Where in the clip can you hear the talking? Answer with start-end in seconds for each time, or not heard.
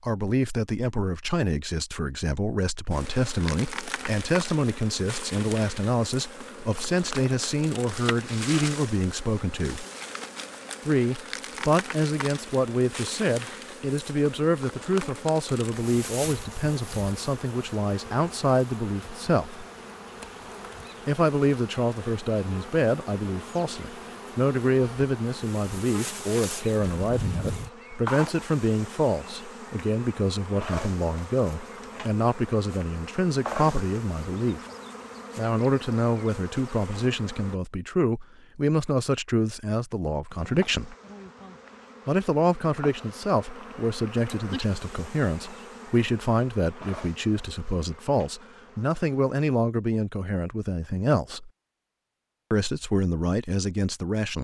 0.0-9.8, 10.8-19.6, 21.1-34.6, 35.4-41.0, 42.0-51.5, 52.5-54.3.